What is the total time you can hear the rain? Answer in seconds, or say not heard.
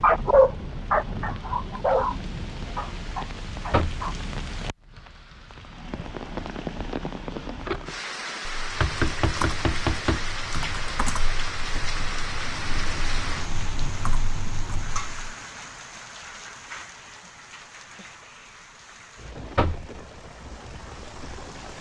22 s.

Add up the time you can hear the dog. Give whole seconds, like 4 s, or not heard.
4 s.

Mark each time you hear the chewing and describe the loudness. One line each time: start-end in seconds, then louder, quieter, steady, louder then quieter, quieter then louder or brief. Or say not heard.
not heard.